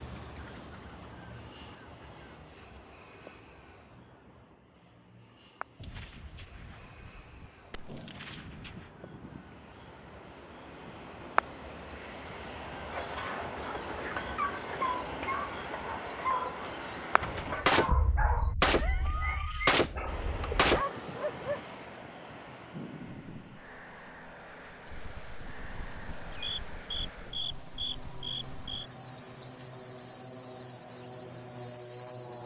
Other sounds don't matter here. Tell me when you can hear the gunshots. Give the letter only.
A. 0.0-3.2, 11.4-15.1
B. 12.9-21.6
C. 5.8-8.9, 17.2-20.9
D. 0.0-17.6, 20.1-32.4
C.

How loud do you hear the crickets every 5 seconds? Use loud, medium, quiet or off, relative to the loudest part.
medium, quiet, loud, loud, loud, loud, loud.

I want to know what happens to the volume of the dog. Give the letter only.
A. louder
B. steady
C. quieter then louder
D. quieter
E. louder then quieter
B.